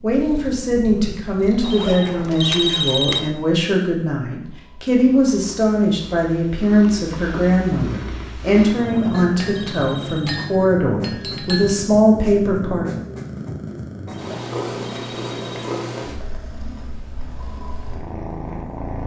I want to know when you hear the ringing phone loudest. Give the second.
3 s.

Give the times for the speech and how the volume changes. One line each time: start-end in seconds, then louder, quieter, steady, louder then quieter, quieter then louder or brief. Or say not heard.
0.0-12.9 steady.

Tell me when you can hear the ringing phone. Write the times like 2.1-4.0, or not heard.
1.6-3.3, 8.8-10.3, 14.1-15.8.